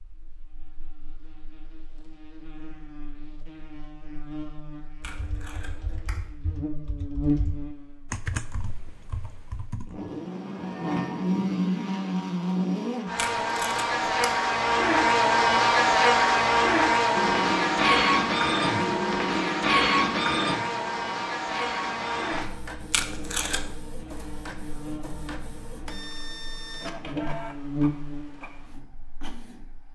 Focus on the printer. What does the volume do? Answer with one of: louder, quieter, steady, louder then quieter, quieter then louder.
quieter.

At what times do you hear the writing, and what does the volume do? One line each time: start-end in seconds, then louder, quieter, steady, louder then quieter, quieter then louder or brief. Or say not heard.
not heard.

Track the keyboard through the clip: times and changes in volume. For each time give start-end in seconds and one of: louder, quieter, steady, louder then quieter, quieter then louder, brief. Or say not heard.
5.1-9.9 louder then quieter.